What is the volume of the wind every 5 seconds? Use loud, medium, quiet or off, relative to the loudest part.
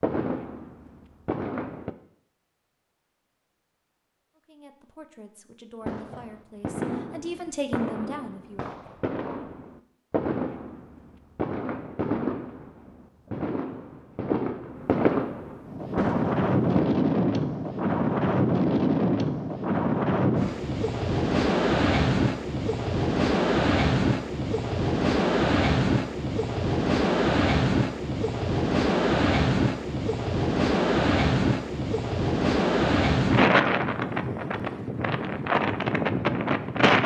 off, off, off, loud, loud, loud, loud, loud.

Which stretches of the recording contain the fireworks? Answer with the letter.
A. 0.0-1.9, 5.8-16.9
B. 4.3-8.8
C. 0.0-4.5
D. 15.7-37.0
A.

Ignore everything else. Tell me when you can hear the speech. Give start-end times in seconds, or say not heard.
4.3-8.8.